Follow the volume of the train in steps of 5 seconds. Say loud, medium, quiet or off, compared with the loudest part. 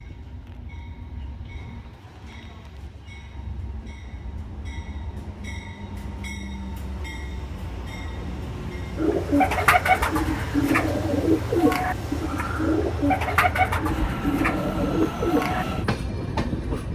quiet, medium, loud, loud.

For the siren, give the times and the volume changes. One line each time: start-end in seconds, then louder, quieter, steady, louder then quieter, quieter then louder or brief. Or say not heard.
not heard.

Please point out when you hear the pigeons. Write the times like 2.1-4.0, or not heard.
8.9-15.7.